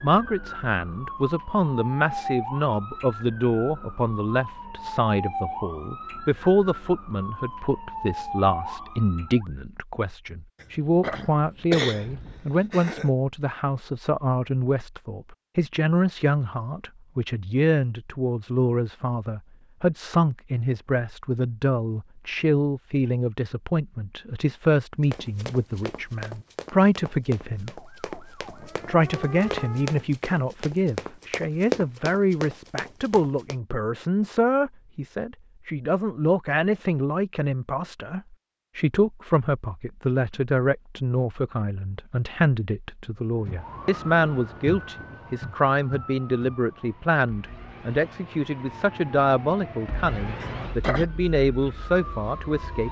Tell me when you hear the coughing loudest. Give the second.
12 s.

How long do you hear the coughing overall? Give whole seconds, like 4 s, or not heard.
3 s.